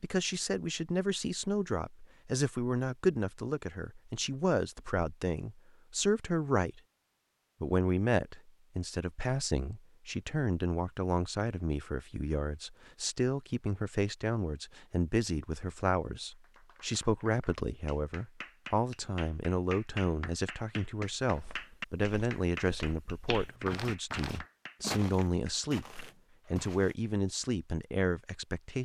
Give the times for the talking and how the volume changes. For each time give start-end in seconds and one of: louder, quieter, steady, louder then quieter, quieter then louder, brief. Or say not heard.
0.0-6.8 steady
7.6-28.7 steady.